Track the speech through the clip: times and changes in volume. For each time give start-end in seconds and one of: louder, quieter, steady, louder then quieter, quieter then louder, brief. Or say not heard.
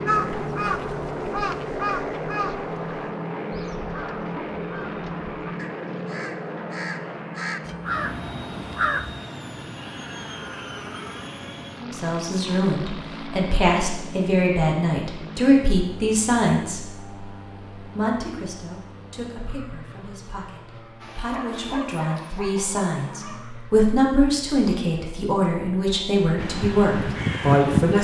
11.8-28.0 quieter then louder.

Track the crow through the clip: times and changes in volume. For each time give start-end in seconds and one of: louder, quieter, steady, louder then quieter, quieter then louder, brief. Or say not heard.
0.1-9.2 quieter then louder
26.4-28.0 brief.